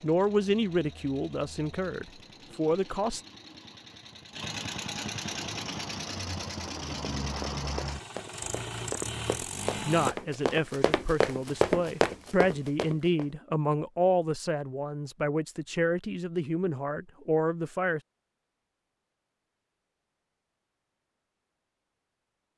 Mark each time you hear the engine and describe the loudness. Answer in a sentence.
You can hear the engine from 0.0 to 10.2 s, getting louder.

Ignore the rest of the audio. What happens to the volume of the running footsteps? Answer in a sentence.
The loudness of the running footsteps goes up.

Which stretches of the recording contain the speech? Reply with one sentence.
You can hear the speech from 0.0 to 3.2 s and from 9.8 to 18.0 s.